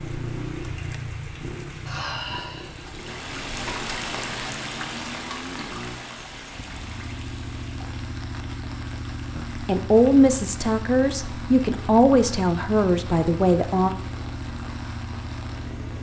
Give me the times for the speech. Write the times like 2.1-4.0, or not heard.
9.3-13.9.